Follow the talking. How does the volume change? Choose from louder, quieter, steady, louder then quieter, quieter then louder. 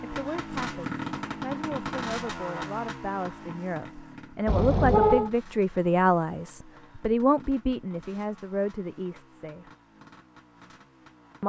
louder then quieter.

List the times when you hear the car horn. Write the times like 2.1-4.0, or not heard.
4.5-5.3.